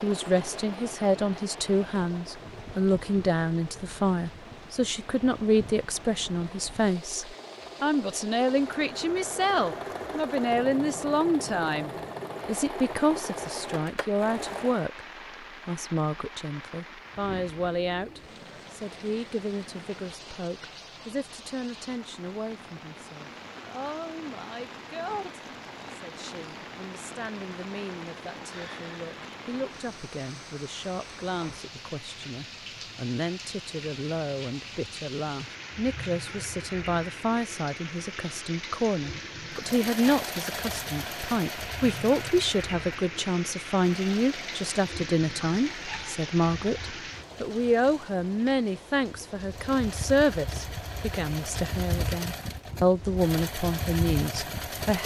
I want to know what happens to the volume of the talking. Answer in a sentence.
The loudness of the talking goes down, then up.